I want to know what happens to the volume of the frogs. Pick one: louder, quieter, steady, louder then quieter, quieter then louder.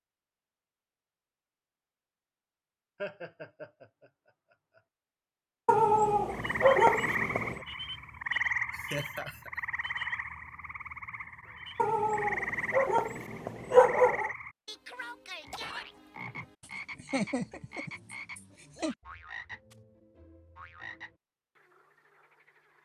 quieter.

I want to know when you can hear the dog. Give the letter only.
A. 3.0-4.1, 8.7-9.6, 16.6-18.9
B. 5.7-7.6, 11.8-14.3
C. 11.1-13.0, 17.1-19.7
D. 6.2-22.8
B.